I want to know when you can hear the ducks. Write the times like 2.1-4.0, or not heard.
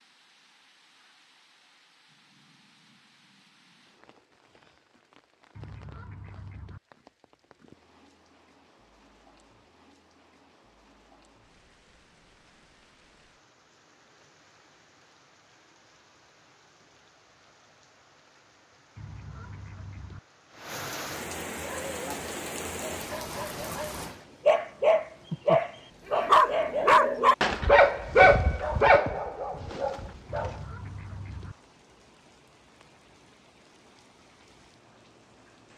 5.5-6.8, 18.9-20.2, 30.2-31.6.